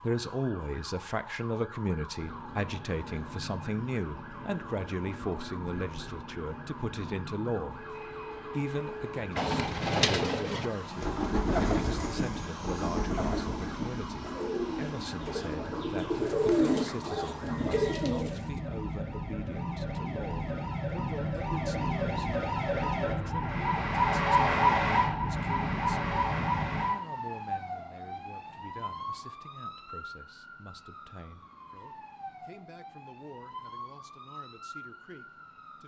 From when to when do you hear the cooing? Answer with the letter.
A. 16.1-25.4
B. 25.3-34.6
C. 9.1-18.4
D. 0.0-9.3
C.